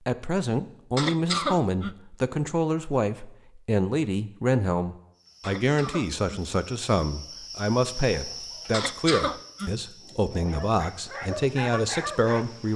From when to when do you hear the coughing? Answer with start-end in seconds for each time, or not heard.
0.9-1.9, 5.4-6.4, 8.7-10.5.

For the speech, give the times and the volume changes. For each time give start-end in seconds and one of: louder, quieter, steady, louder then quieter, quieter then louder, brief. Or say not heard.
0.1-12.7 steady.